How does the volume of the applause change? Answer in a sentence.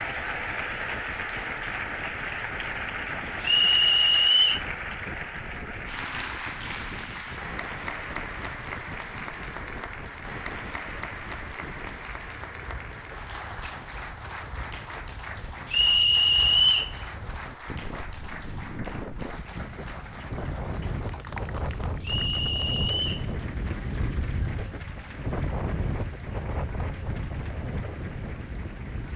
The loudness of the applause goes down.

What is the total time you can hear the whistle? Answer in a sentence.
You can hear the whistle for 4 seconds altogether.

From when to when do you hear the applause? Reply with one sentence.
The applause can be heard from 0.0 to 29.1 s.